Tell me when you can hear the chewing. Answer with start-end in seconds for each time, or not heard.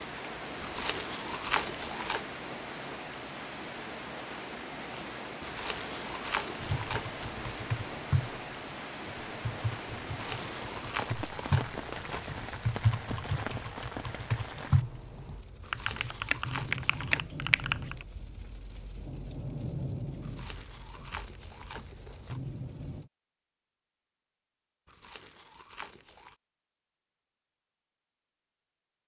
0.6-2.3, 5.4-7.1, 10.0-12.5, 15.6-17.2, 20.2-22.4, 24.9-26.4.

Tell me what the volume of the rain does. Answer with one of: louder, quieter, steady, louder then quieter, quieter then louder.
steady.